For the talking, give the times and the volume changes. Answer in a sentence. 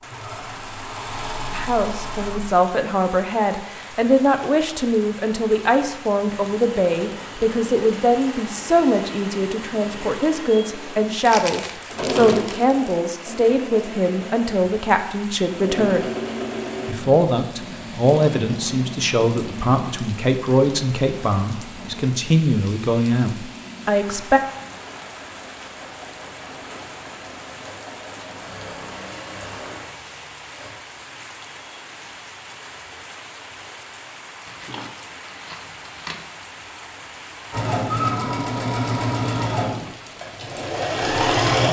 You can hear the talking from 1.5 to 16.0 s, at a steady volume; and from 16.9 to 24.4 s, at a steady volume.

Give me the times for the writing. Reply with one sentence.
You can't hear the writing here.